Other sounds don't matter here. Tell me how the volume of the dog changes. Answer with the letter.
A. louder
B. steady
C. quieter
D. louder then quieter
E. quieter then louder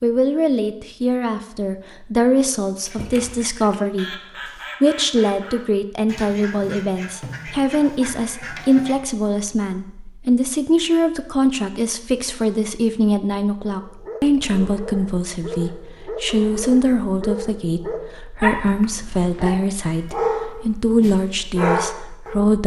A.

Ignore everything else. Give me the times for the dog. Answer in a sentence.
The dog can be heard from 13.6 to 22.4 s.